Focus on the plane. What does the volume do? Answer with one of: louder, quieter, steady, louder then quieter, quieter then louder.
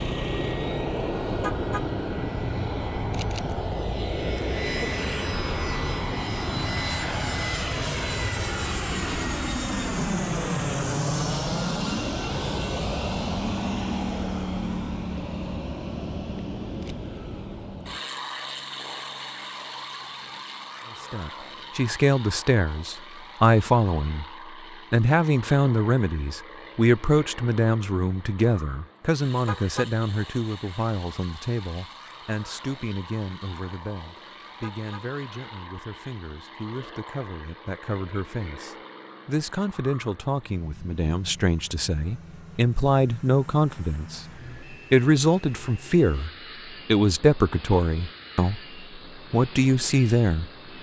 quieter.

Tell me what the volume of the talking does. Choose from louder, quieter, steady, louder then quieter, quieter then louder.
quieter then louder.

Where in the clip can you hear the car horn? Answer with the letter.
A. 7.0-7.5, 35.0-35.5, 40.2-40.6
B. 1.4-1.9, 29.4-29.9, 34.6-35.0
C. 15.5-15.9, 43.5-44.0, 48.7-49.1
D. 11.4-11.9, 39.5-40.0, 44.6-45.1
B.